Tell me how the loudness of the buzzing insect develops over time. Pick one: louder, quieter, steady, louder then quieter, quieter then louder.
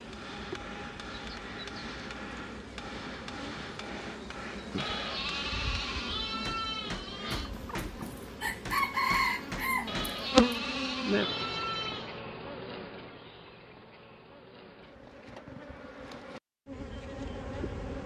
louder then quieter.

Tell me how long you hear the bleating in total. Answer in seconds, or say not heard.
5 s.